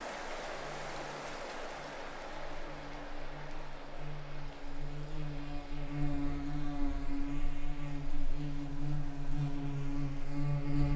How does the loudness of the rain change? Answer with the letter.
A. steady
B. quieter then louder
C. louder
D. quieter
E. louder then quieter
D.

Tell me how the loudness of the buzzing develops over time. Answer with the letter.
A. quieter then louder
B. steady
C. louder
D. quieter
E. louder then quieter
C.